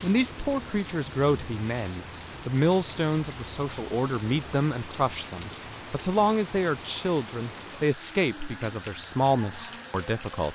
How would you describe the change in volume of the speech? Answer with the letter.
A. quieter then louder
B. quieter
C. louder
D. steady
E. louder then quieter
D.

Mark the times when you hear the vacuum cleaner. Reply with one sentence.
You can't hear the vacuum cleaner here.